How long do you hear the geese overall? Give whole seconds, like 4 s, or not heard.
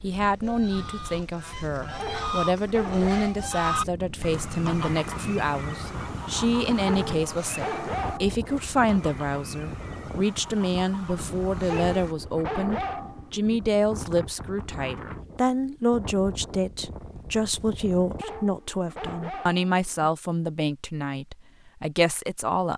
12 s.